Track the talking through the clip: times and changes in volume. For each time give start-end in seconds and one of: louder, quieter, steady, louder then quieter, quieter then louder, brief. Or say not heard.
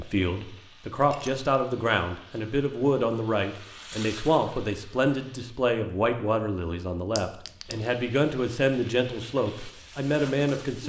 0.0-10.8 steady.